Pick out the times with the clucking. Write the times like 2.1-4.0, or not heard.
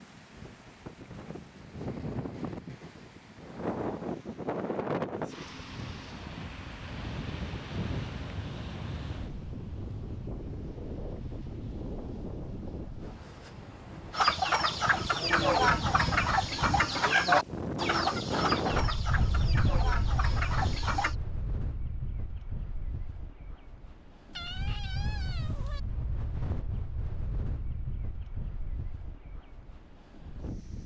14.1-21.1.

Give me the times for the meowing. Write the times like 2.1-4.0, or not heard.
24.3-25.8.